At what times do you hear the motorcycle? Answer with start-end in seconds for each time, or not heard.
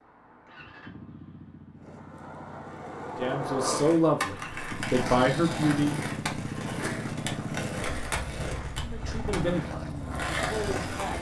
0.0-11.1.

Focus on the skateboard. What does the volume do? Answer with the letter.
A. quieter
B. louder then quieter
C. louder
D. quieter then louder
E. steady
E.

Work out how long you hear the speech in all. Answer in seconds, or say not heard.
5 s.